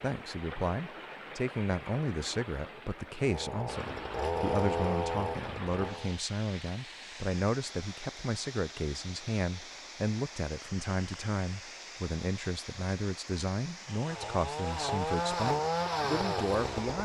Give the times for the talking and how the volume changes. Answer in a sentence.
The talking can be heard from 0.0 to 17.0 s, at a steady volume.